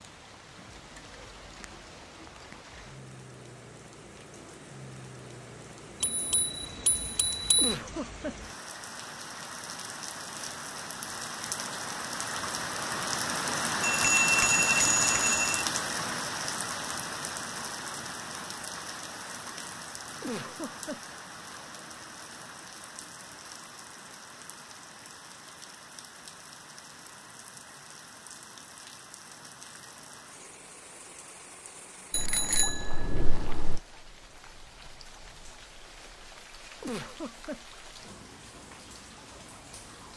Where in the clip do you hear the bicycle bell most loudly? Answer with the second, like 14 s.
14 s.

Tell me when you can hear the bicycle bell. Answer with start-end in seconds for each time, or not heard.
6.0-7.8, 13.8-15.7, 32.1-33.8.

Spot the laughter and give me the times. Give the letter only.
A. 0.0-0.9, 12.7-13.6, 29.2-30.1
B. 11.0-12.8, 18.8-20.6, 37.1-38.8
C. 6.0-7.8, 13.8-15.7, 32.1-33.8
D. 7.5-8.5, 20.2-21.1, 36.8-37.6
D.